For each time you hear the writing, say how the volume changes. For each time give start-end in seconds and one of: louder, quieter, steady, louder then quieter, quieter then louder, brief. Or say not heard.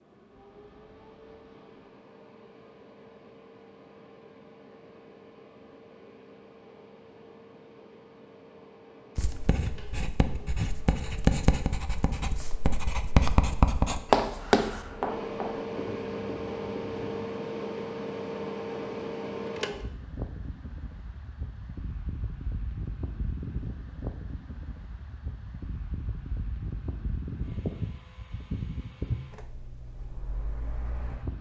9.2-17.2 louder then quieter.